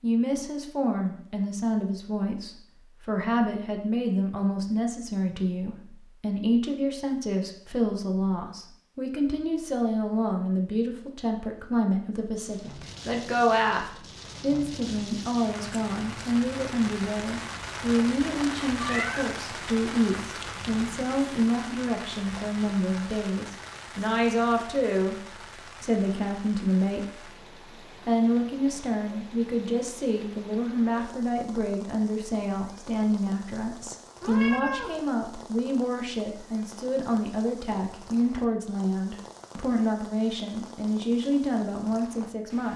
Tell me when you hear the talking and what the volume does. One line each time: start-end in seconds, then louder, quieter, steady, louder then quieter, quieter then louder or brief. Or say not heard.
0.0-27.3 steady
28.1-42.7 steady.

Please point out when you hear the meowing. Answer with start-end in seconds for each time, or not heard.
18.8-19.4, 34.2-35.0.